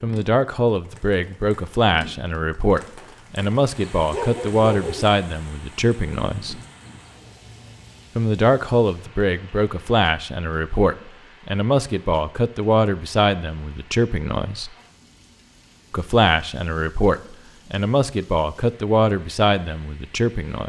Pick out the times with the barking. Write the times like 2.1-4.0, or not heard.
4.1-5.0.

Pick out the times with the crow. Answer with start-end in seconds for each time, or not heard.
not heard.